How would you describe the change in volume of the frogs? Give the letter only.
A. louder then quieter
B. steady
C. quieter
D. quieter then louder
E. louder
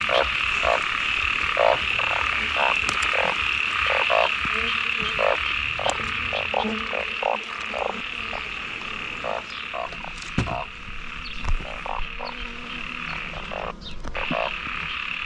C.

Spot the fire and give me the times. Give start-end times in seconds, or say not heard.
not heard.